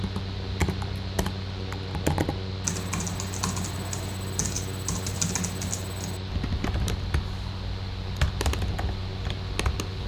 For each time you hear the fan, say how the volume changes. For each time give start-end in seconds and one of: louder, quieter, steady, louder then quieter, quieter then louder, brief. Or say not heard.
0.0-10.0 steady.